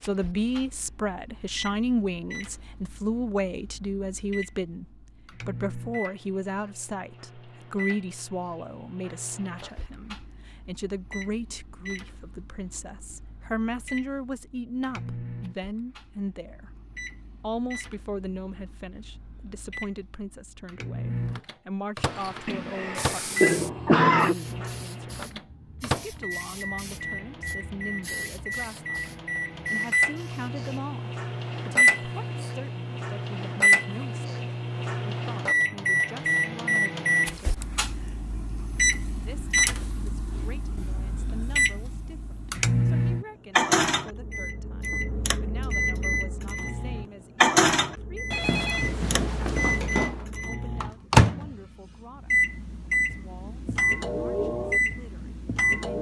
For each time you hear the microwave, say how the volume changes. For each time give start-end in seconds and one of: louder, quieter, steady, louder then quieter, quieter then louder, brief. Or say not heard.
0.0-55.9 louder.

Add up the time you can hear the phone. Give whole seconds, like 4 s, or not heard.
2 s.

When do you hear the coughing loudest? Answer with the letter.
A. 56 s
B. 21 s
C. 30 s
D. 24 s
D.